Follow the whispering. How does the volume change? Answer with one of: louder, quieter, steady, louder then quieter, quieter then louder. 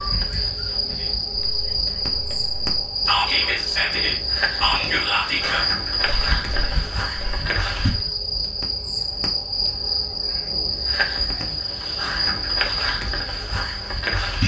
louder then quieter.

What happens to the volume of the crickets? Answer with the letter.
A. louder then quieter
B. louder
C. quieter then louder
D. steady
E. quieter
D.